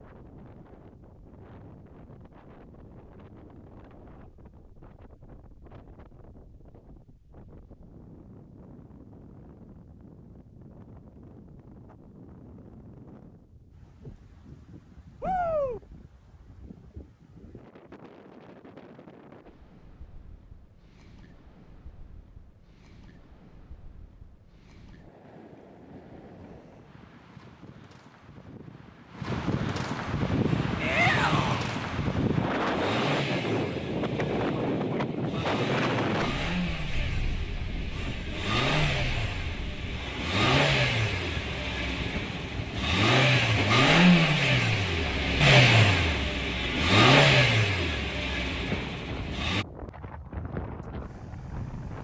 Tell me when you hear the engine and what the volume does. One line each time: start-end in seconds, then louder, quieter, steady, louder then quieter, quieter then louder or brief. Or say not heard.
30.2-49.6 louder.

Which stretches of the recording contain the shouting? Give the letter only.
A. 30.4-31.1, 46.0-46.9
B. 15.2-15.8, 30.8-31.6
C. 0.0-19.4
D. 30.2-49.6
B.